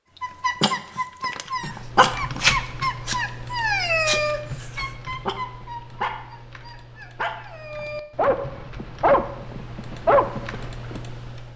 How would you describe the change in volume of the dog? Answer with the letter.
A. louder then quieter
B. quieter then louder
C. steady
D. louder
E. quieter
B.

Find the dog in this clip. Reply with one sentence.
The dog can be heard from 0.2 to 11.0 s.